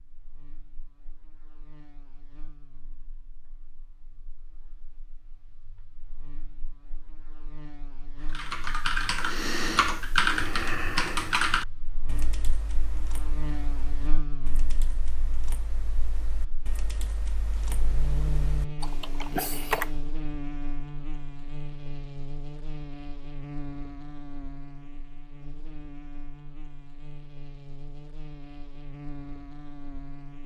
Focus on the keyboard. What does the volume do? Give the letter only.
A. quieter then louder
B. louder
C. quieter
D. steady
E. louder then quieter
A.